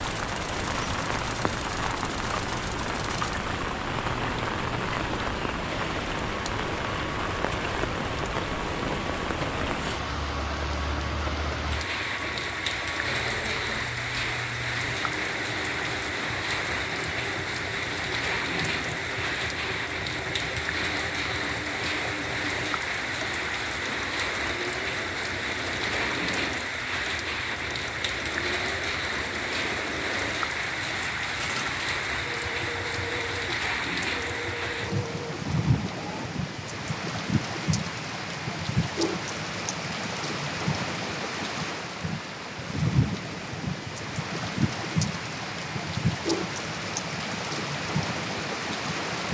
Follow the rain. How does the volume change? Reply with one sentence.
The loudness of the rain stays about the same.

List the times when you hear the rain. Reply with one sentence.
The rain can be heard from 0.0 to 49.2 s.